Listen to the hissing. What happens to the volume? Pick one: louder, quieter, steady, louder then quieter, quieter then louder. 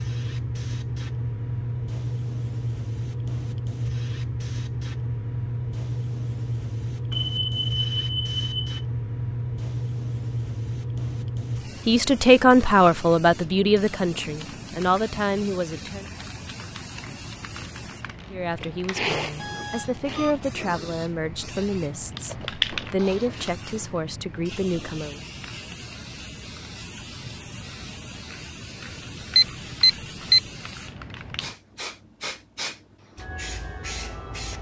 quieter.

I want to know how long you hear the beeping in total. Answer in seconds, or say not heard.
4 s.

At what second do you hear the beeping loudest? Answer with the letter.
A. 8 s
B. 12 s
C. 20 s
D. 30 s
D.